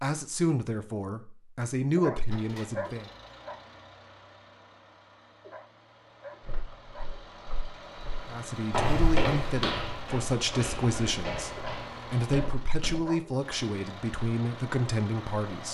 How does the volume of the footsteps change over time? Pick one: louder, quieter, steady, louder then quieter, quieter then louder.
louder then quieter.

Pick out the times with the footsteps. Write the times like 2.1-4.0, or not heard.
6.4-13.1.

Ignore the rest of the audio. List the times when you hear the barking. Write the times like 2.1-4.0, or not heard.
1.9-3.6, 5.4-7.2, 11.6-13.3.